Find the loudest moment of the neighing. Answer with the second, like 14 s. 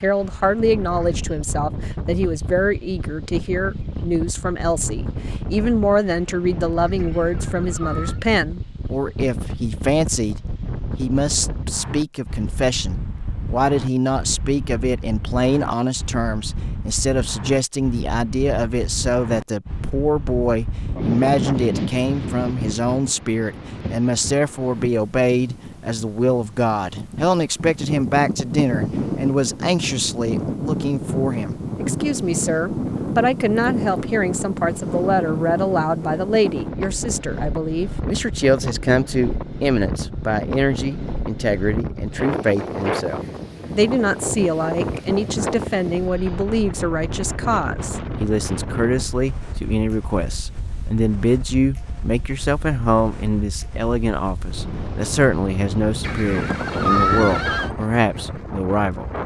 57 s.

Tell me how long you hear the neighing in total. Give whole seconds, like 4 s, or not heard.
3 s.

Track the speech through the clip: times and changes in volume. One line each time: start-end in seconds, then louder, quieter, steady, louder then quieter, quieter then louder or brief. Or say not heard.
0.0-10.3 steady
10.9-59.1 steady.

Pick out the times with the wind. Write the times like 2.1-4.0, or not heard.
0.0-59.2.